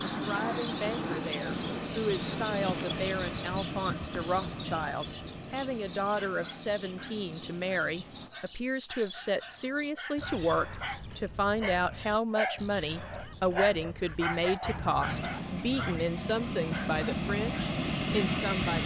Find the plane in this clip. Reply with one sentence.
The plane can be heard from 0.0 to 8.3 s and from 15.1 to 18.8 s.